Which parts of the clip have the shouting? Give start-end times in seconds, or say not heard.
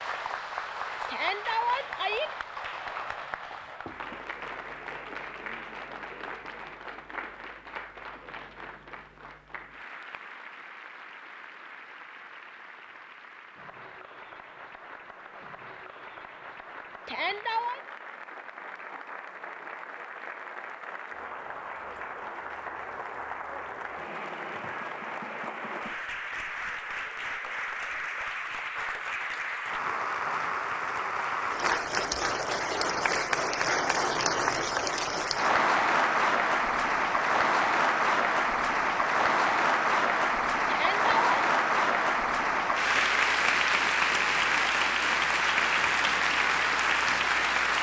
1.1-2.3, 17.1-17.8, 40.6-41.4.